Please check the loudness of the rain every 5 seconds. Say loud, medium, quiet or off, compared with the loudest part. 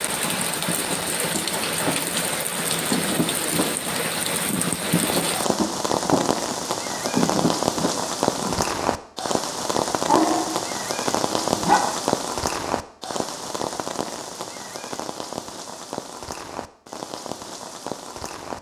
loud, loud, loud, medium.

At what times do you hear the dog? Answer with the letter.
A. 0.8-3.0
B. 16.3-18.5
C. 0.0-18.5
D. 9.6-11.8
D.